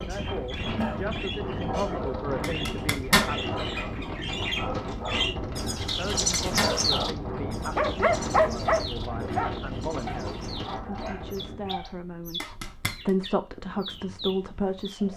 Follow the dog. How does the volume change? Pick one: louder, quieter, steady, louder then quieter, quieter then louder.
louder then quieter.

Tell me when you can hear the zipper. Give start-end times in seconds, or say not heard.
2.4-3.3, 5.8-6.8, 12.4-12.9.